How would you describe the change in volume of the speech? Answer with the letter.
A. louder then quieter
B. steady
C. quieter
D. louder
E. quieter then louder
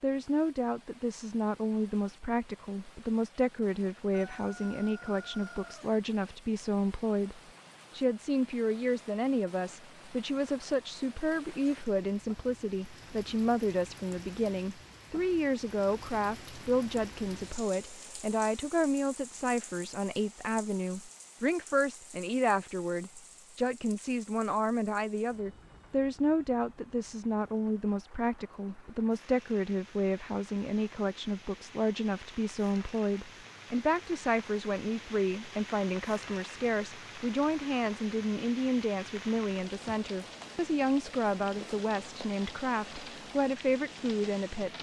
B.